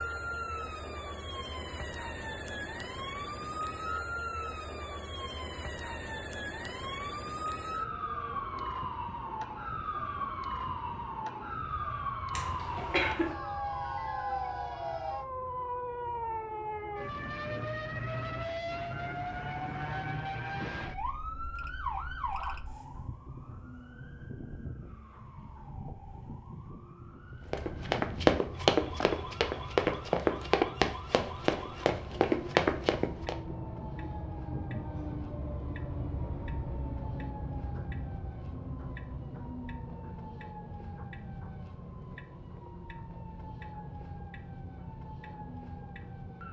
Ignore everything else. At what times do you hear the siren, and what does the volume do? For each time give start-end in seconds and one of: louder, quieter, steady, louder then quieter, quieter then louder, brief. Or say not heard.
0.0-46.4 quieter.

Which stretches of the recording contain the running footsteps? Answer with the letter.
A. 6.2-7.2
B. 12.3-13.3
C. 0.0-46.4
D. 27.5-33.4
D.